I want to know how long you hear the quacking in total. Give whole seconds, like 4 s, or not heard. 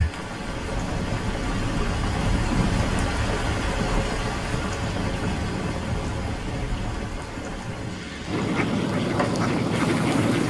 2 s.